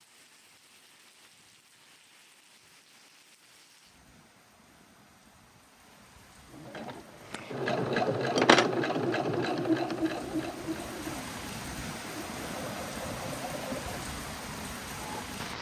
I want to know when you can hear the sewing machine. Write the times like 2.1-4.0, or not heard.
6.5-15.2.